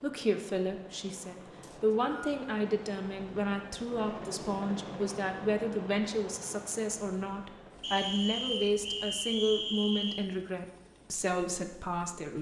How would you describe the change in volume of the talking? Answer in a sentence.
The loudness of the talking stays about the same.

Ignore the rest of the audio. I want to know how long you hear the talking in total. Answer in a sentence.
The talking can be heard for 12 seconds in total.